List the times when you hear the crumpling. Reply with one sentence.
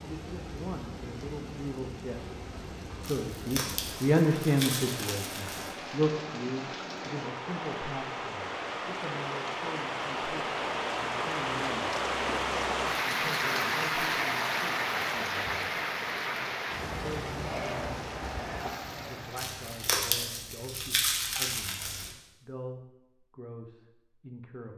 You can hear the crumpling from 3.0 to 5.8 s and from 19.4 to 22.1 s.